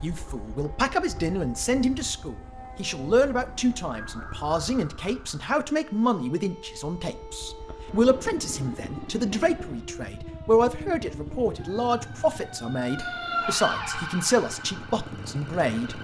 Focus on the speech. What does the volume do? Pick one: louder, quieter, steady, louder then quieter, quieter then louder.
steady.